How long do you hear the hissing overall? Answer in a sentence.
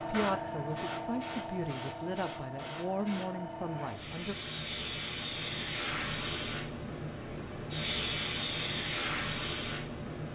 You can hear the hissing for 10 seconds altogether.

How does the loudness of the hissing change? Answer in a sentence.
The loudness of the hissing goes up.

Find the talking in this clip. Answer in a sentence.
The talking can be heard from 0.1 to 4.3 s.